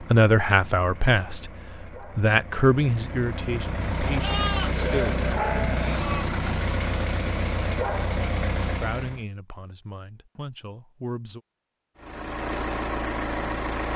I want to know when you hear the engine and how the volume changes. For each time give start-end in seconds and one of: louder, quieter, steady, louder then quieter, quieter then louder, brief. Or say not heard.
0.0-9.2 louder
11.9-13.9 brief.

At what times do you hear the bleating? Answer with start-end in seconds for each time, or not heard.
4.0-6.2.